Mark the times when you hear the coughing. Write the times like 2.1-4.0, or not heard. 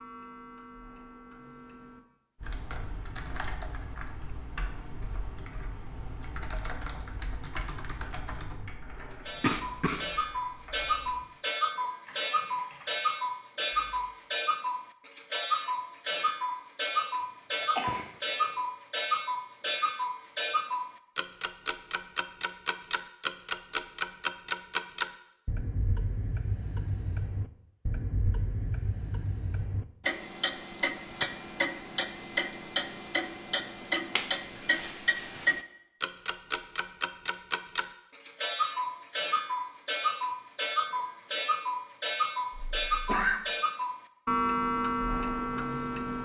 9.4-10.1, 17.6-18.6, 42.5-43.4.